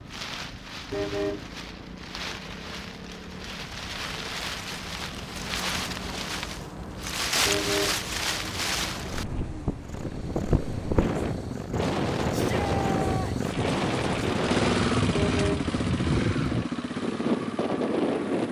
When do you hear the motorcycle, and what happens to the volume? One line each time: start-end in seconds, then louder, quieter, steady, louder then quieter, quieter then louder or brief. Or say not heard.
0.0-18.4 louder.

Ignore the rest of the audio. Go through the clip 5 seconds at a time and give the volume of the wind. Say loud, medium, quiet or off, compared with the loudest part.
medium, loud, loud, loud.